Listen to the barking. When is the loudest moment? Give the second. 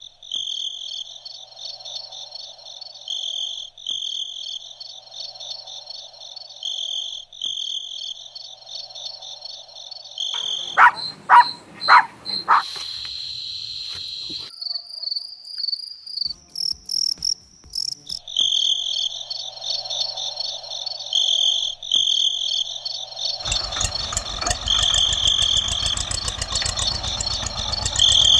11 s.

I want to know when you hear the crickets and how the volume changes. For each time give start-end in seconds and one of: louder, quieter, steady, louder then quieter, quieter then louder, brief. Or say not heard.
0.0-28.3 louder.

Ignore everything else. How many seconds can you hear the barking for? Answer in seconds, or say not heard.
2 s.